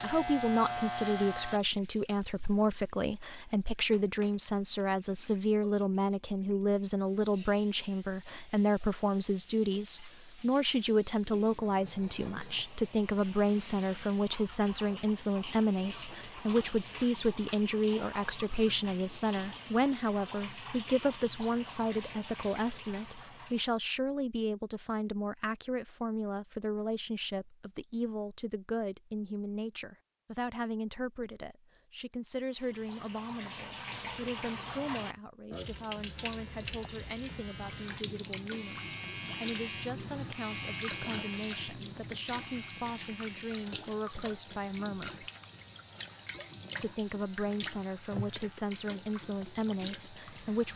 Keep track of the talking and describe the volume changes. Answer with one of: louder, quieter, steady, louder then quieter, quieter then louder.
quieter.